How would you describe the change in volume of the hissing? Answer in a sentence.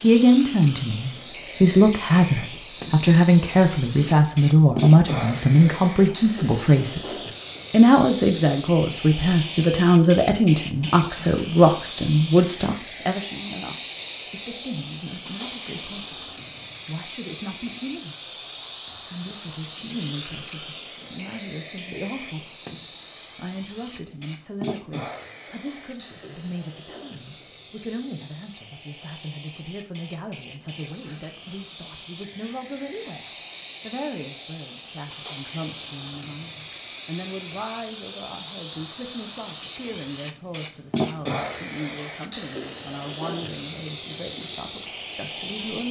The volume of the hissing goes down, then up.